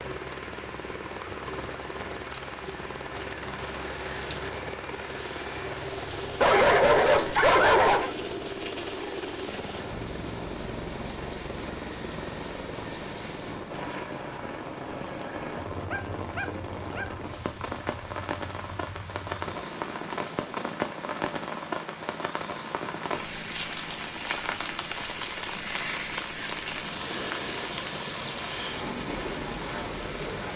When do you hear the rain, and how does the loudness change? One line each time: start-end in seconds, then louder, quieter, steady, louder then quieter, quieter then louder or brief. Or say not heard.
0.0-30.5 louder.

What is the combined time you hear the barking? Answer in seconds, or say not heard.
3 s.